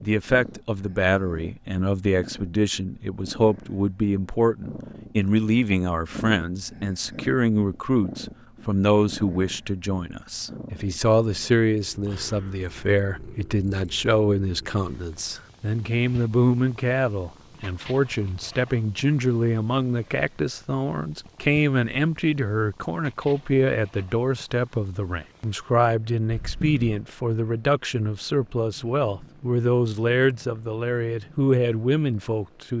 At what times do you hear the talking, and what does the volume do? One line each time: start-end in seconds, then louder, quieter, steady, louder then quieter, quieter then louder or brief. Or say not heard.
0.0-32.7 steady.